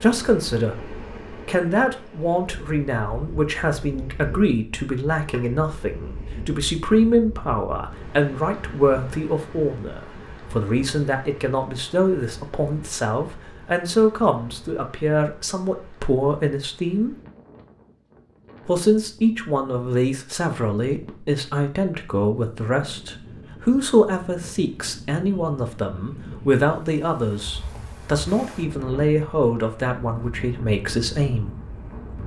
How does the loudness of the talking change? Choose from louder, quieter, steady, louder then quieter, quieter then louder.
steady.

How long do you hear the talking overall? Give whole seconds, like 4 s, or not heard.
30 s.